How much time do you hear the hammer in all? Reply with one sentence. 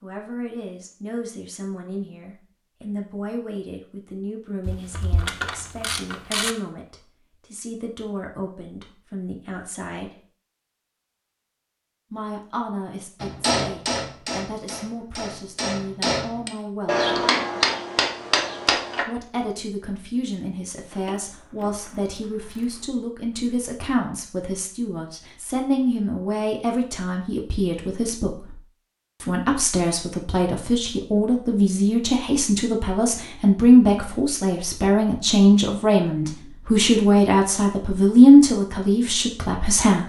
The hammer can be heard for 6 seconds in total.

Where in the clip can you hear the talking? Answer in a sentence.
You can hear the talking from 0.0 to 10.1 s, from 12.1 to 17.1 s, from 19.0 to 28.6 s and from 29.2 to 40.0 s.